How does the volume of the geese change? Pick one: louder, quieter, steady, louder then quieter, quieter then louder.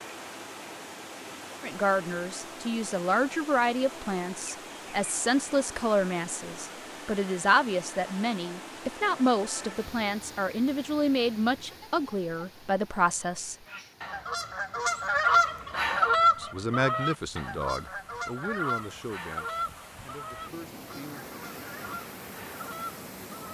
quieter.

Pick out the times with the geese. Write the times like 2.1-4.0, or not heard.
13.7-23.4.